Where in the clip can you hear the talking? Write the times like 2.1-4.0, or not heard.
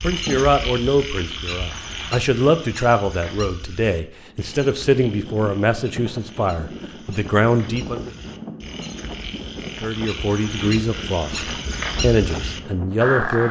0.0-8.1, 9.8-13.4.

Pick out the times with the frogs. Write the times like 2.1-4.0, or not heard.
0.0-13.4.